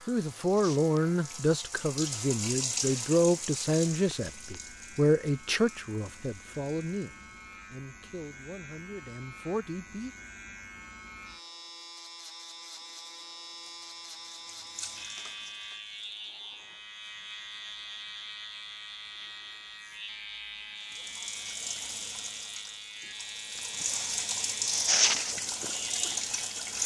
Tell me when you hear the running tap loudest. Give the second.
25 s.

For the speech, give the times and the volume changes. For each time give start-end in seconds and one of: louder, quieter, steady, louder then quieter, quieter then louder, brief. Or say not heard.
0.1-10.1 quieter.